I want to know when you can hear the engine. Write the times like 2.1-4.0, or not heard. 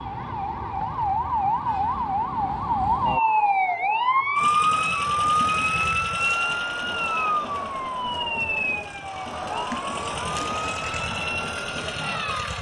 4.3-12.5.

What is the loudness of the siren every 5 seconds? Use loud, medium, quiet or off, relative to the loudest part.
loud, loud, medium.